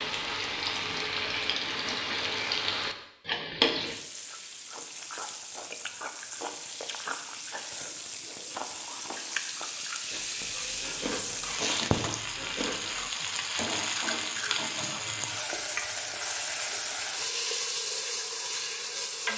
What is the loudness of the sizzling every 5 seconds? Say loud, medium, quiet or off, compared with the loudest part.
loud, medium, loud, loud.